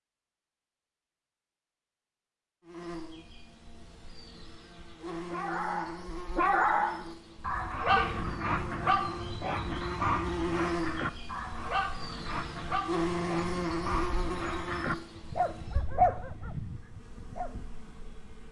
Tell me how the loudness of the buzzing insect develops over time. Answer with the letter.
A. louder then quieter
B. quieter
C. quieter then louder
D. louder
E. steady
A.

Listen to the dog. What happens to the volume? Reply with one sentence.
The loudness of the dog goes down, then up.